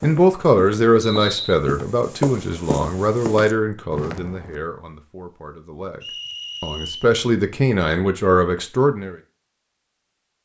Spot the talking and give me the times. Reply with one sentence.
The talking can be heard from 0.0 to 9.2 s.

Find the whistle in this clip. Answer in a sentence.
The whistle can be heard from 1.0 to 1.6 s and from 6.0 to 7.1 s.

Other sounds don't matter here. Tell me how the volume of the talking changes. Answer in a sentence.
The volume of the talking goes down, then up.